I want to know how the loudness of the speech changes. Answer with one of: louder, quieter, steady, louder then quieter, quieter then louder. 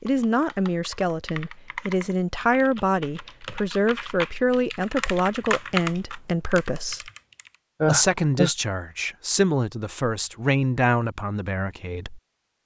steady.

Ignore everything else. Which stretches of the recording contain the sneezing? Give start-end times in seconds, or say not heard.
7.8-8.5.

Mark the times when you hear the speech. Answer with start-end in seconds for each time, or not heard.
0.0-7.1, 7.8-12.2.